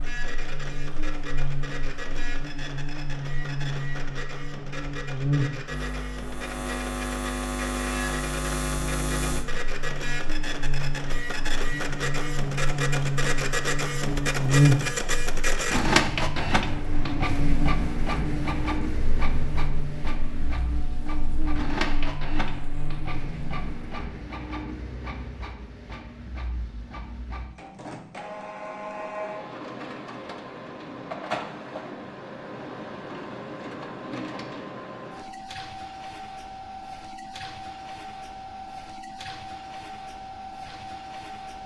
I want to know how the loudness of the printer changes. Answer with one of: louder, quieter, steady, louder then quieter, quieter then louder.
louder then quieter.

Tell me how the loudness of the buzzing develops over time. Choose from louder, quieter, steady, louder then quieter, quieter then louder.
louder then quieter.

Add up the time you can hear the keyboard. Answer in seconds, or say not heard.
not heard.